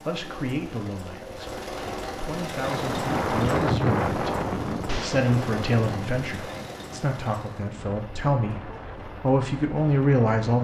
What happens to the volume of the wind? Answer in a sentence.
The volume of the wind goes down.